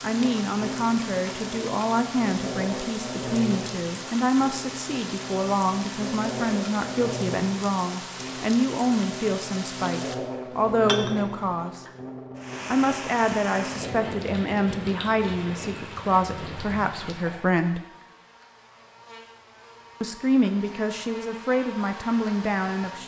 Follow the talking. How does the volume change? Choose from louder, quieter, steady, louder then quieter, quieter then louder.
steady.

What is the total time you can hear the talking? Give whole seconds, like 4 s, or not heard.
20 s.